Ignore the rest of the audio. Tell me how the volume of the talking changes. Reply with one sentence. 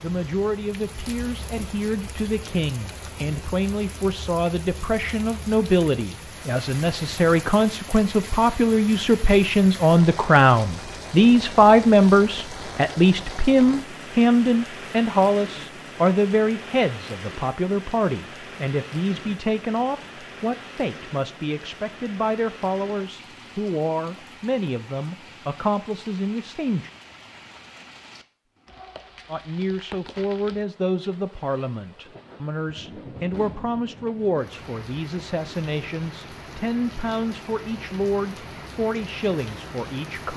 The volume of the talking goes up, then down.